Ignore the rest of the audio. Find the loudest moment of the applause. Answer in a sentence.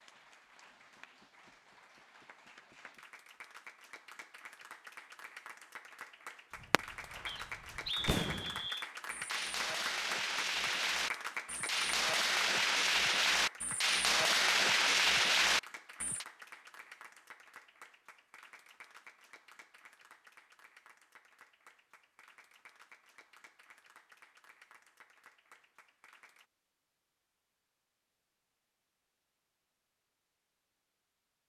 The volume of the applause peaks at 11 seconds.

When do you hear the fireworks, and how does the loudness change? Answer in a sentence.
You can hear the fireworks from 6.5 to 16.2 s, getting louder.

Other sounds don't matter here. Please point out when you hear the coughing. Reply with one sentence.
You can't hear the coughing here.